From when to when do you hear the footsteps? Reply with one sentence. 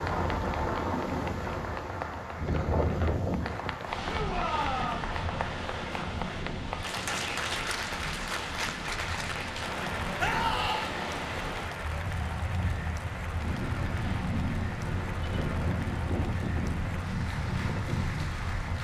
You can't hear the footsteps here.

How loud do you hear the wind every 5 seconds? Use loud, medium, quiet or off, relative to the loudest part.
loud, medium, loud, loud.